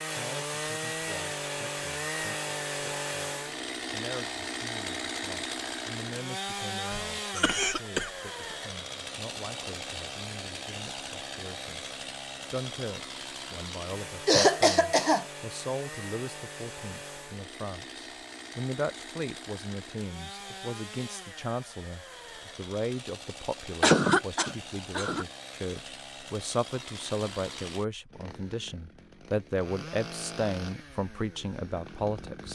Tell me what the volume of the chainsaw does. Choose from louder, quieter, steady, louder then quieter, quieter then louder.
quieter.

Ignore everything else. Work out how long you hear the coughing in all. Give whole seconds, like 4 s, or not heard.
4 s.